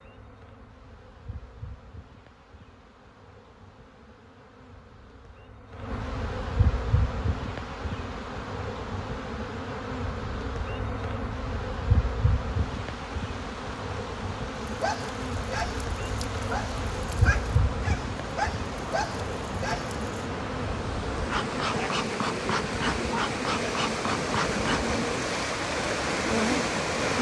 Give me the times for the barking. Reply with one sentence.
You can hear the barking from 14.6 to 20.2 s.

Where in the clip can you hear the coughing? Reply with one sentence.
The coughing can't be heard in this clip.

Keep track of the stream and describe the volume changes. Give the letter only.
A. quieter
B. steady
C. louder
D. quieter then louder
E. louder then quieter
C.